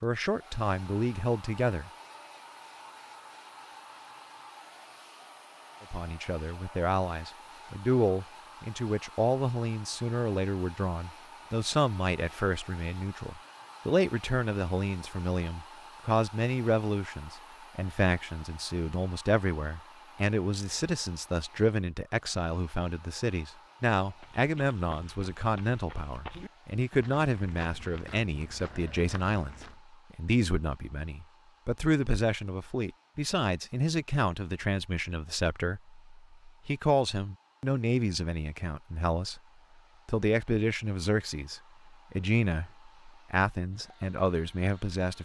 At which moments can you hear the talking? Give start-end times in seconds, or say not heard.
0.0-1.9, 5.8-39.4, 40.0-45.2.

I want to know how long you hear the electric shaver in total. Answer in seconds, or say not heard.
not heard.